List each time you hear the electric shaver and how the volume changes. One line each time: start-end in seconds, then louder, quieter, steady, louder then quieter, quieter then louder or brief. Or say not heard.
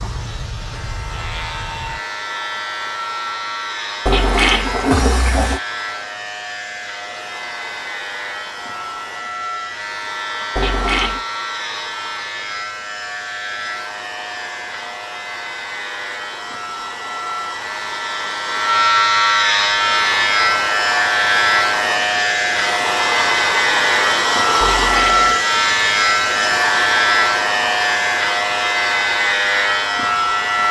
0.0-30.6 louder.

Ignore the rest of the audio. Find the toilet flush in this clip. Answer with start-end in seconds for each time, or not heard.
4.0-5.6, 10.6-11.2, 24.6-25.4.